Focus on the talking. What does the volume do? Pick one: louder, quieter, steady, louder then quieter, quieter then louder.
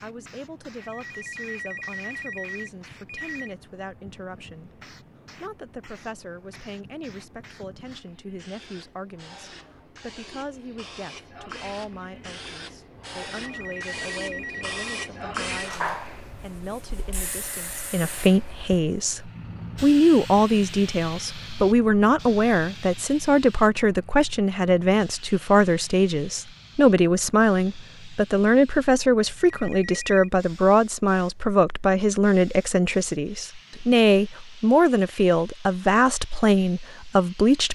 louder.